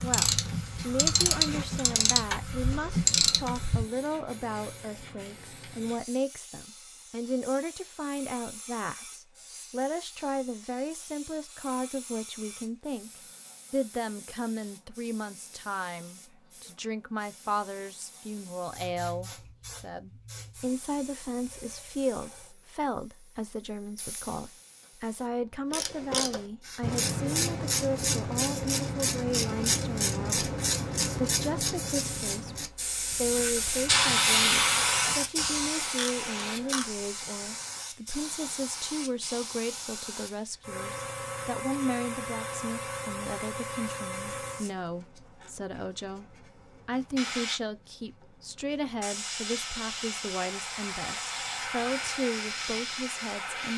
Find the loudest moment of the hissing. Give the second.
34 s.